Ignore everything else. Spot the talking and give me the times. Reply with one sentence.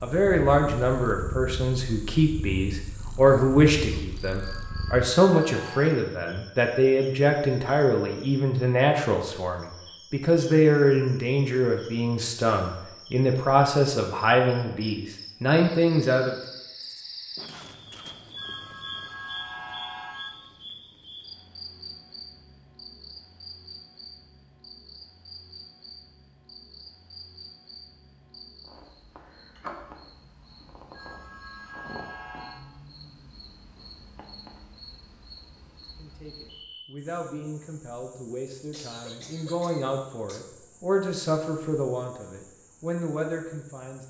The talking can be heard from 0.0 to 16.4 s and from 36.0 to 44.0 s.